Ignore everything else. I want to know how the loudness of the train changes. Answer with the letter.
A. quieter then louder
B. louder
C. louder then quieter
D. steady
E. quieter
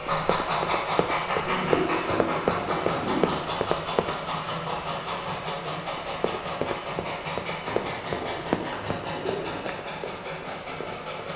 E.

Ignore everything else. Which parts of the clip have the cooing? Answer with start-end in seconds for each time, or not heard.
1.4-3.2, 7.7-9.6.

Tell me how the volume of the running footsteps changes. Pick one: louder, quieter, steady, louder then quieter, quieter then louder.
louder then quieter.